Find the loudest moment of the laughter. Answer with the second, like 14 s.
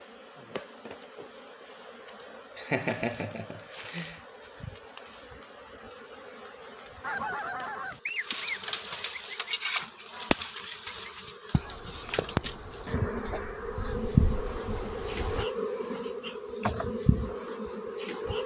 3 s.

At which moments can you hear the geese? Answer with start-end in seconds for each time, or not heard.
7.0-15.4.